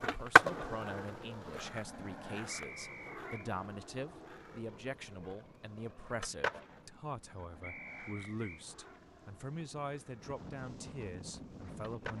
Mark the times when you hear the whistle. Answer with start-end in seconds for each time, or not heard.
2.5-3.5, 7.6-8.7.